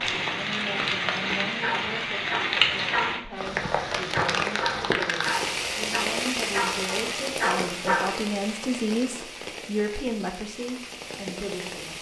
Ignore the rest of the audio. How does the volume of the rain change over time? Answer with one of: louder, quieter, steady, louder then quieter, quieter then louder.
quieter.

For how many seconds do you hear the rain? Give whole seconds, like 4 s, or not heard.
12 s.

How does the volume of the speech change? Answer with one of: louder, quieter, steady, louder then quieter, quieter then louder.
louder.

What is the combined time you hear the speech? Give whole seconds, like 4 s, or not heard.
12 s.